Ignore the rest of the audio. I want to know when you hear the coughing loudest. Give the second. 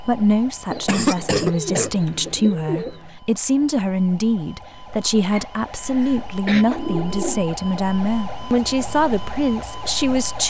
1 s.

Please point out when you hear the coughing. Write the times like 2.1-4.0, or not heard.
0.8-1.9, 5.3-6.7.